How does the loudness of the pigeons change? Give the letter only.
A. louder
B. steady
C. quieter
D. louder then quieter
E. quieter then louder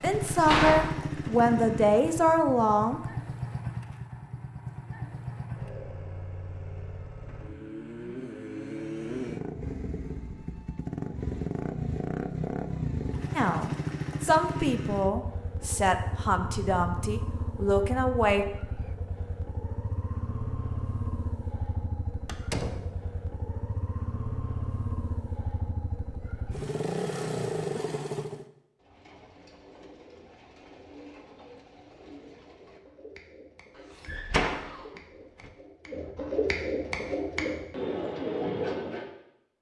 A.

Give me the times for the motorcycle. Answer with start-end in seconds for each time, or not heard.
0.0-28.4.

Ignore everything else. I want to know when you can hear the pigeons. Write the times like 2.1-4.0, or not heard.
28.8-39.1.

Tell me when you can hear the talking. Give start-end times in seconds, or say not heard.
0.0-3.0, 13.3-18.4.